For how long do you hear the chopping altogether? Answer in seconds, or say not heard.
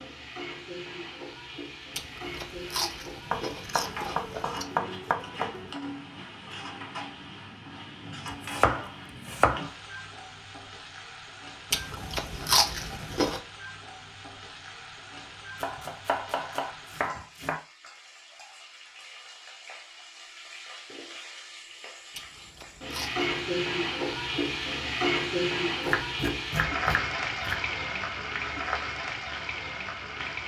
8 s.